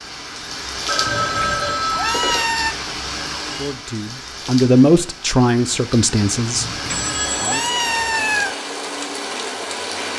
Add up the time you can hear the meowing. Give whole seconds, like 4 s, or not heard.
4 s.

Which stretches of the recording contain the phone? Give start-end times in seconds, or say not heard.
0.8-2.5, 6.8-7.8.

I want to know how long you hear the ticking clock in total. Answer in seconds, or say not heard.
not heard.